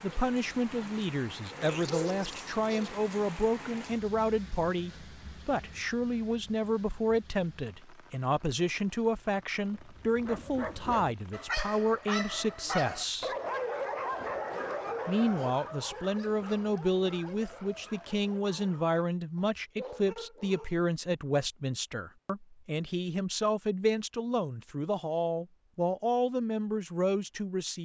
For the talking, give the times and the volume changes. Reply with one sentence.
The talking can be heard from 0.0 to 13.3 s, at a steady volume; and from 15.1 to 27.7 s, at a steady volume.